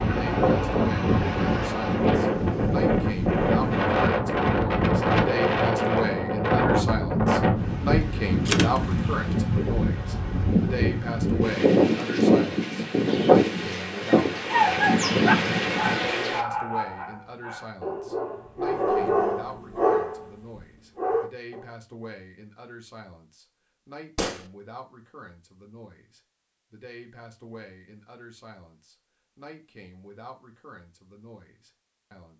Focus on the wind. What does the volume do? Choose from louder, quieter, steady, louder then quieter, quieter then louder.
steady.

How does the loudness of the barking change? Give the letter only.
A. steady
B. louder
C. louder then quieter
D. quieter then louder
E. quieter
D.